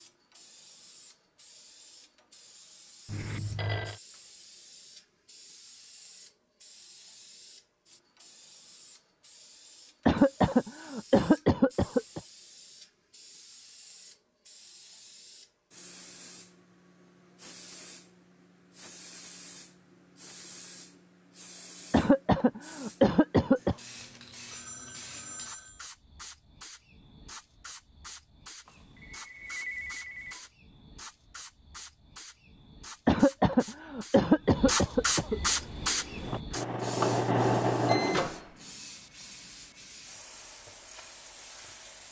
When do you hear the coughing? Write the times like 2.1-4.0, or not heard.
10.1-12.2, 21.9-23.8, 33.0-35.4.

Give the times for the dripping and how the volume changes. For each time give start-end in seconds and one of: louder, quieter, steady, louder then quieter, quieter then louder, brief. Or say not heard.
not heard.